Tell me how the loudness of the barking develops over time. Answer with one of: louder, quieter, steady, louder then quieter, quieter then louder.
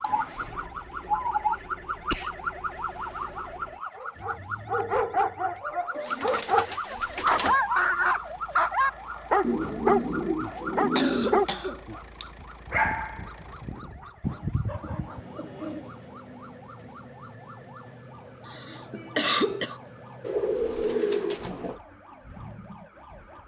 louder then quieter.